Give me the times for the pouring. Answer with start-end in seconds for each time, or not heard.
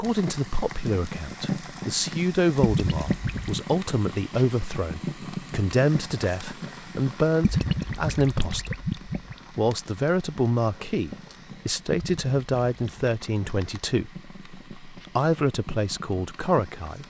2.6-3.6, 7.4-9.3, 11.9-13.1.